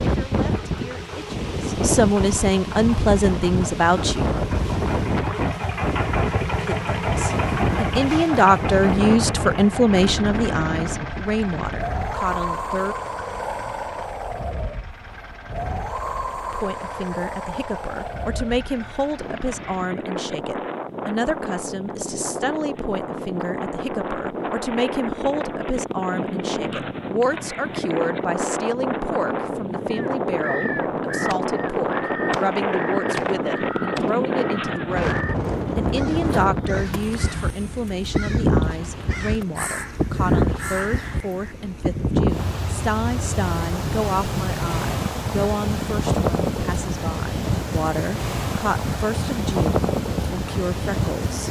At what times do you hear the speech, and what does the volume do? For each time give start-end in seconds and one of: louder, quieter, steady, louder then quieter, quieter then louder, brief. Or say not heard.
0.1-4.3 louder
6.7-12.9 louder then quieter
16.5-51.4 steady.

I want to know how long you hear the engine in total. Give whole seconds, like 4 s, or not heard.
20 s.